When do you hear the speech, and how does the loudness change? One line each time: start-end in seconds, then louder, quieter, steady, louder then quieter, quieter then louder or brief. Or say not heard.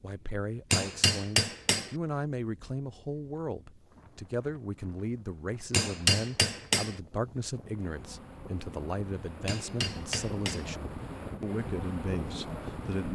0.0-13.1 steady.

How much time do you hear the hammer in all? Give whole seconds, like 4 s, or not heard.
4 s.